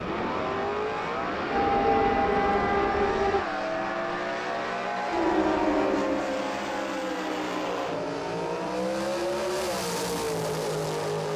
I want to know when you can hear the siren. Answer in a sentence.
You can hear the siren from 1.4 to 3.5 s and from 5.0 to 8.8 s.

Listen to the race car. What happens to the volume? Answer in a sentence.
The loudness of the race car stays about the same.